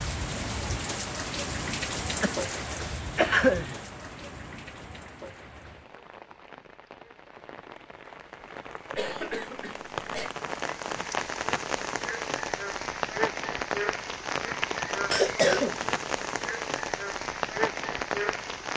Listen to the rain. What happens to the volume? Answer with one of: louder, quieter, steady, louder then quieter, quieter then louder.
quieter then louder.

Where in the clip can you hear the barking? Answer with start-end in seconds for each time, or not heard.
not heard.